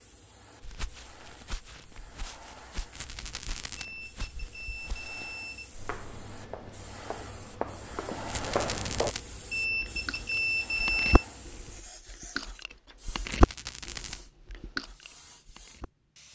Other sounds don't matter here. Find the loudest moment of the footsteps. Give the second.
9 s.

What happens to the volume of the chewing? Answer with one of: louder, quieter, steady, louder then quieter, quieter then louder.
louder then quieter.